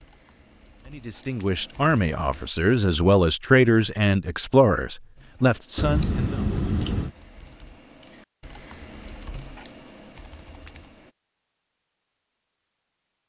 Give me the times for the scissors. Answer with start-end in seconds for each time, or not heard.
5.8-7.2.